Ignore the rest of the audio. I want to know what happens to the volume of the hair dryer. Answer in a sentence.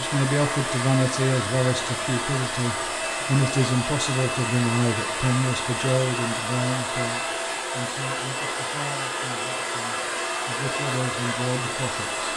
The volume of the hair dryer stays about the same.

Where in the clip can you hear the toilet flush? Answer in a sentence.
The toilet flush can't be heard in this clip.